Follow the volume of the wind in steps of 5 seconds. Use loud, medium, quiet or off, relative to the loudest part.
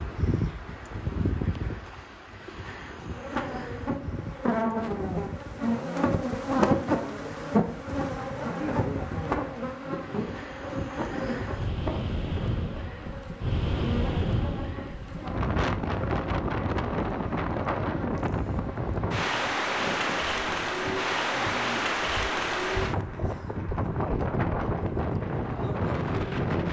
medium, quiet, medium, loud, loud, loud.